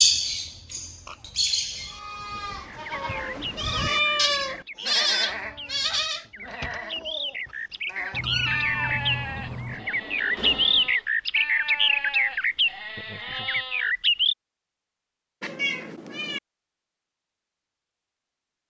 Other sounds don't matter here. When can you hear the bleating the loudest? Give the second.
5 s.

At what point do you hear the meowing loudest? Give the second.
4 s.